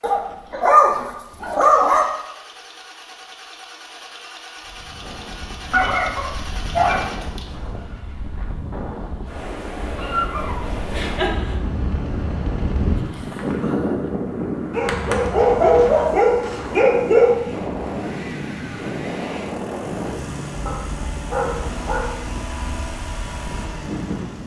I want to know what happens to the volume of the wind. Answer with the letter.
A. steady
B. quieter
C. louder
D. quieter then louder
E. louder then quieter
E.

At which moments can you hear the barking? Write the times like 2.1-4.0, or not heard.
0.0-2.0, 5.7-7.1, 9.9-11.6, 14.7-17.4, 20.6-22.2.